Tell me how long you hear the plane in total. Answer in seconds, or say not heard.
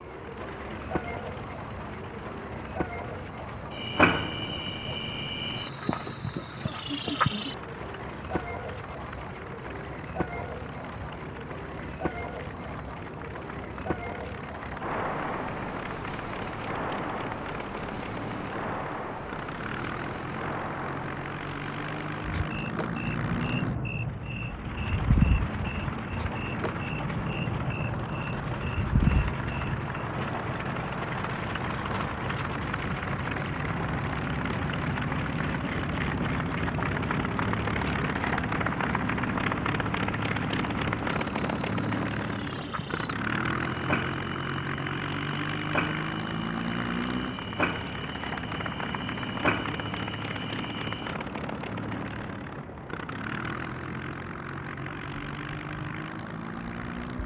57 s.